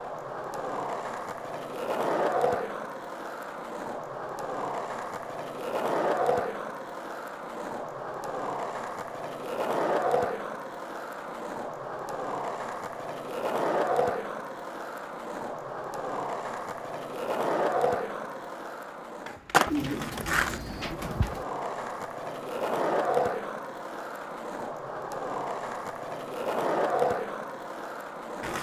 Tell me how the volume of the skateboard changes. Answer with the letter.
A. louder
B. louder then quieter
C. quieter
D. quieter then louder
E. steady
E.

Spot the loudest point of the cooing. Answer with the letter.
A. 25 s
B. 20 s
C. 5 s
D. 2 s
B.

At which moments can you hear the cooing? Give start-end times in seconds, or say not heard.
19.6-21.4.